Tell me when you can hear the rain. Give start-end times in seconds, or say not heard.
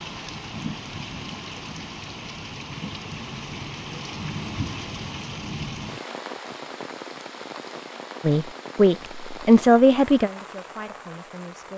0.0-11.7.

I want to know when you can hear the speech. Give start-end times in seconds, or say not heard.
8.2-11.7.